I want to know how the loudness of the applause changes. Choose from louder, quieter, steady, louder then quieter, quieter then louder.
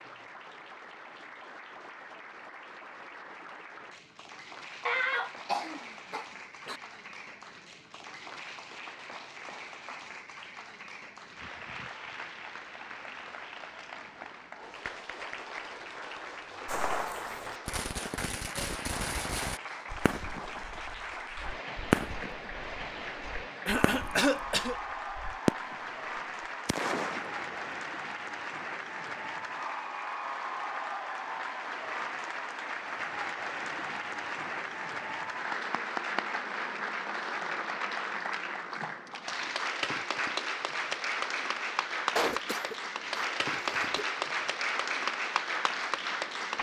louder.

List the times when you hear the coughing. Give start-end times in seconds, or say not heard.
4.8-6.8, 23.6-24.8, 42.1-44.0.